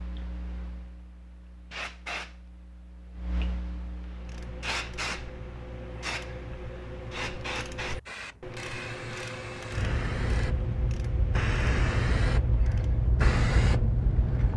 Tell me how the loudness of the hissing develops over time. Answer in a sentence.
The loudness of the hissing goes up.